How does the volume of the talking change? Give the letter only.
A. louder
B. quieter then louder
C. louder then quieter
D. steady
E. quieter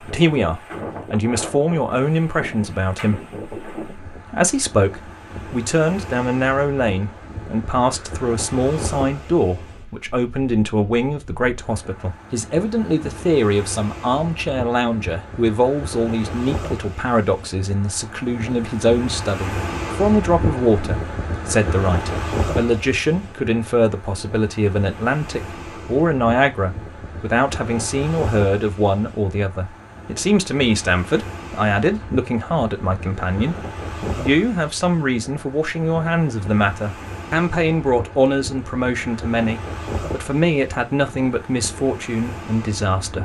D.